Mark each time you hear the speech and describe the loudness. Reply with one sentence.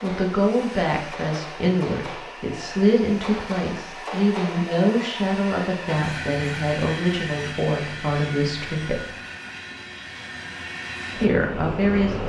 The speech can be heard from 0.0 to 9.1 s, at a steady volume; and briefly from 11.2 to 12.2 s.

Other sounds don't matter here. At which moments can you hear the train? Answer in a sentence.
The train can be heard from 0.0 to 12.2 s.